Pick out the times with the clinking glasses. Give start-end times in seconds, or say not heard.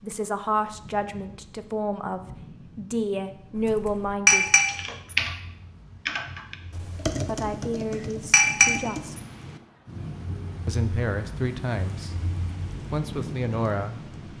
4.2-5.2, 8.3-9.2.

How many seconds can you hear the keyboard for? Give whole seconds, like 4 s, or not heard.
5 s.